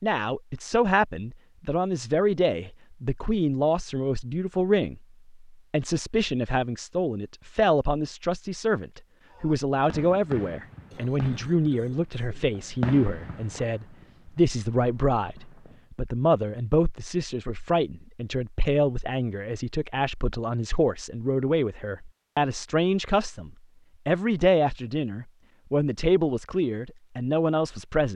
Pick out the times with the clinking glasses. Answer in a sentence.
You can't hear the clinking glasses here.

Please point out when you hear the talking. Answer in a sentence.
The talking can be heard from 0.0 to 28.1 s.